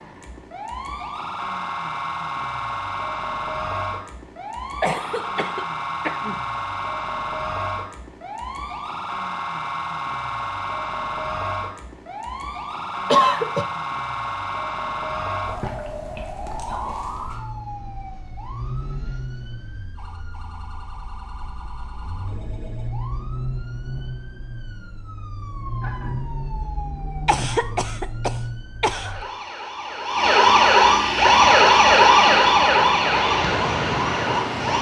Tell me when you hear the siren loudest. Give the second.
32 s.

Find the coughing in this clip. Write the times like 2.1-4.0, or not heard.
4.8-6.4, 13.1-13.7, 27.2-29.1.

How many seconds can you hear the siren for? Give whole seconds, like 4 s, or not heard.
35 s.